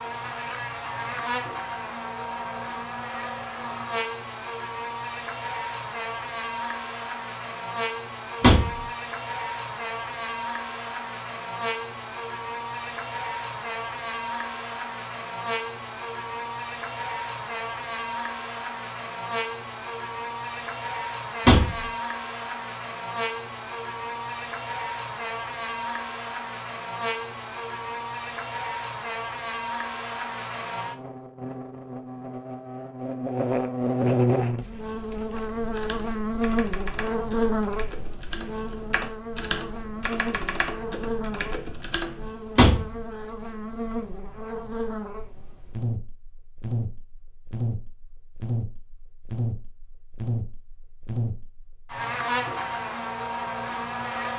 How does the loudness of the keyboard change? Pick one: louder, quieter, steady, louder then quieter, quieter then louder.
louder.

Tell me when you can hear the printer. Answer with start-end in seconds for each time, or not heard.
not heard.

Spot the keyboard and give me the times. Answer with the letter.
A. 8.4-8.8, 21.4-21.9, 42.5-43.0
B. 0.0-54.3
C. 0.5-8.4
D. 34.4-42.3
D.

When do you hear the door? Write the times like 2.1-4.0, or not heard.
8.4-8.8, 21.4-21.9, 42.5-43.0.